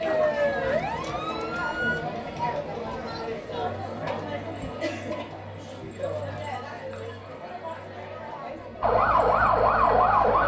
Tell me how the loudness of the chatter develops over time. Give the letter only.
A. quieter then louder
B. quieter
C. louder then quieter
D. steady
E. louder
B.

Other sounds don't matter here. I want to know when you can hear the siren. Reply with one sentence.
The siren can be heard from 0.0 to 2.0 s and from 8.8 to 10.4 s.